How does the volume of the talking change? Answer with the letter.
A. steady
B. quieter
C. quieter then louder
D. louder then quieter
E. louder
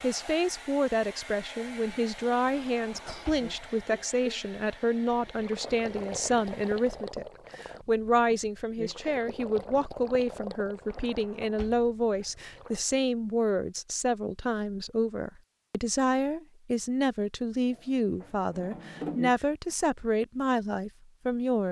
A.